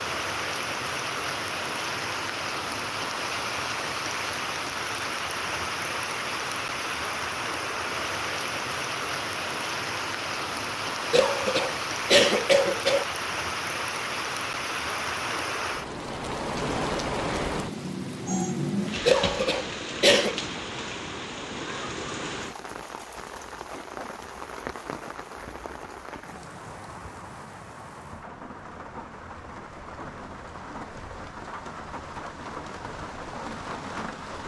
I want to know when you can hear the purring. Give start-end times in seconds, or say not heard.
not heard.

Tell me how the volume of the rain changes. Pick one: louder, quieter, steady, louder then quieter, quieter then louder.
quieter.